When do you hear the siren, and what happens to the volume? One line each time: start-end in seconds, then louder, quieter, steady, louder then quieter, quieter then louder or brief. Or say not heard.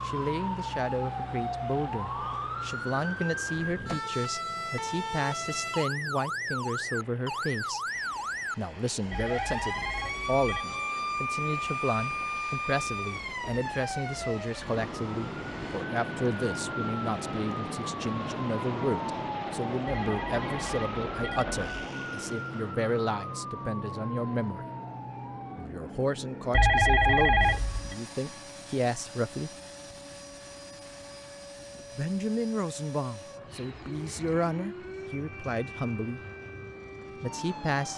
0.0-37.9 quieter.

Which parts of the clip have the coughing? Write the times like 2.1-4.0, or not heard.
not heard.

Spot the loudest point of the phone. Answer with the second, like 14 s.
27 s.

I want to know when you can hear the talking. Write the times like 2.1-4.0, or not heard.
0.0-7.8, 8.6-24.6, 25.6-29.5, 31.9-36.2, 37.2-37.9.